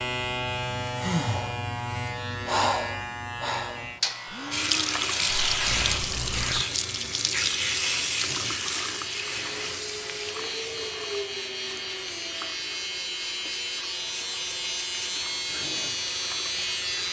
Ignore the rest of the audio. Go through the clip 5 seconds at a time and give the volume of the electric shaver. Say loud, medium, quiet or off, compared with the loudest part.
loud, medium, loud, loud.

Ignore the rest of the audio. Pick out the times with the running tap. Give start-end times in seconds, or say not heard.
4.5-17.0.